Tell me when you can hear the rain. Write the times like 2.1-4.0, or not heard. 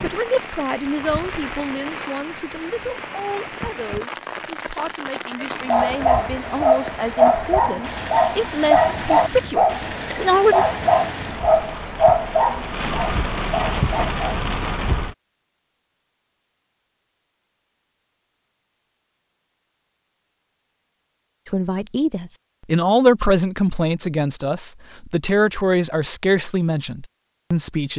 0.0-15.2.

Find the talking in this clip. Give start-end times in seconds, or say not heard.
0.0-10.7, 21.4-27.9.